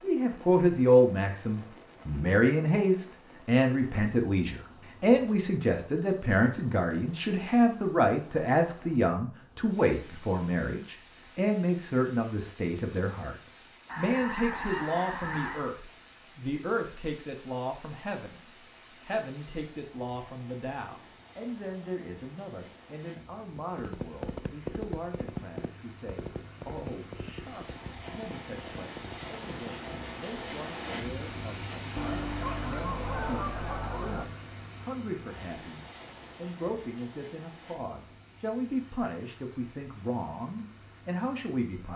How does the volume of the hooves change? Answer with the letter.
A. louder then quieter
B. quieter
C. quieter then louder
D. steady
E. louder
B.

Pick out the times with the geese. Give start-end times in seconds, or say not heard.
13.8-15.8, 31.9-34.2.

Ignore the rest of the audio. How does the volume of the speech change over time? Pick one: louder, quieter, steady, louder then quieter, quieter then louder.
quieter then louder.